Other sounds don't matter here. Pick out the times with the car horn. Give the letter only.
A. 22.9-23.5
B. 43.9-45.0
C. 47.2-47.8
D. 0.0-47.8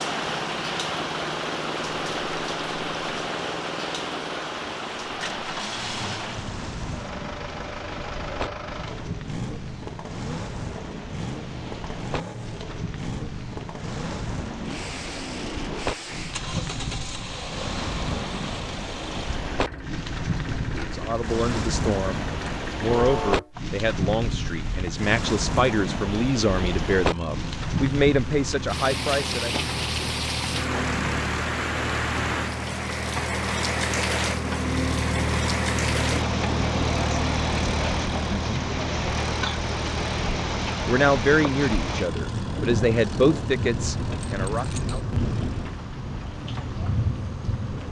A.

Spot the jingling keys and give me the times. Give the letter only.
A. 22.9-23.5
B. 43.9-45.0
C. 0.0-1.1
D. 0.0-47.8
B.